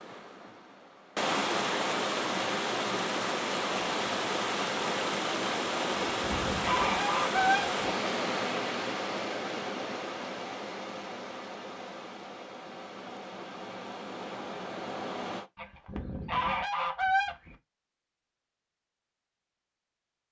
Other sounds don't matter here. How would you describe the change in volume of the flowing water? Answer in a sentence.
The loudness of the flowing water goes down.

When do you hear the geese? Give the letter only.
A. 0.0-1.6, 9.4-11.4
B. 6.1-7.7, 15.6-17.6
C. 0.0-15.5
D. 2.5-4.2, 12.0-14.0
B.